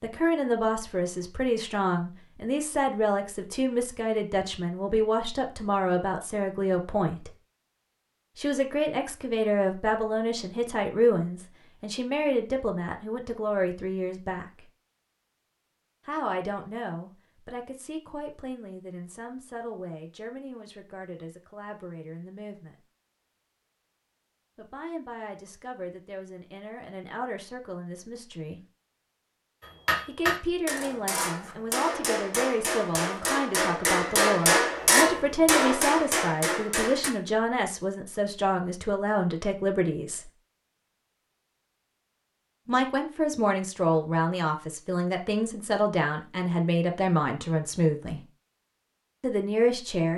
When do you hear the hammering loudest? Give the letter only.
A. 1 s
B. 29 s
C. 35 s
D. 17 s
C.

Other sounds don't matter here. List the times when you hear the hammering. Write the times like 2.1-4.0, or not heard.
29.6-37.1.